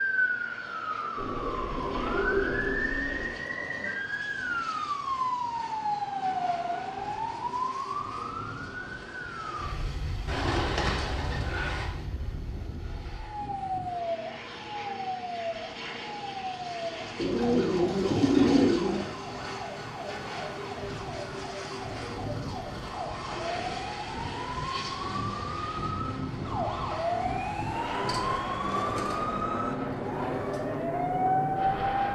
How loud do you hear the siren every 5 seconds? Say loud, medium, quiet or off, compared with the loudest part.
loud, loud, medium, medium, medium, loud, loud.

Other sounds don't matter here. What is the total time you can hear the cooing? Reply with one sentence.
The cooing can be heard for 8 seconds in total.